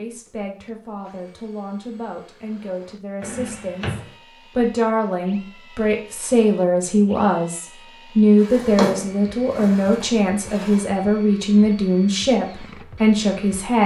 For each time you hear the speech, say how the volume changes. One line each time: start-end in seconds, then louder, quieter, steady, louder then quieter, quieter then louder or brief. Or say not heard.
0.0-13.8 louder.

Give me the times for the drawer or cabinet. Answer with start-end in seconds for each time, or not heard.
3.2-4.2, 8.4-10.8.